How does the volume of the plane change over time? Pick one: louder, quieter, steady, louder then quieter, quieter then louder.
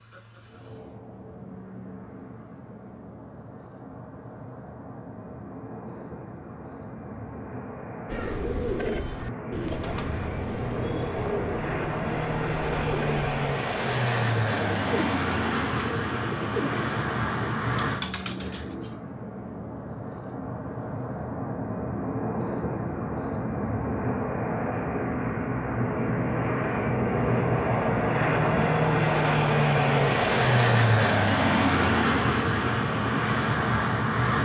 louder.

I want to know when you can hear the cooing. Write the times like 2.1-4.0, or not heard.
8.1-19.0.